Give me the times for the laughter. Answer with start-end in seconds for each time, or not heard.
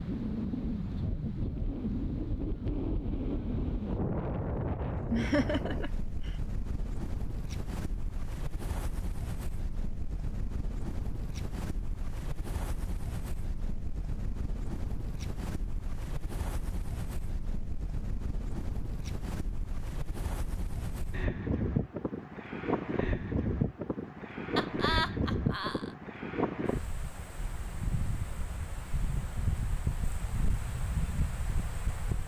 5.1-6.3, 24.6-25.9.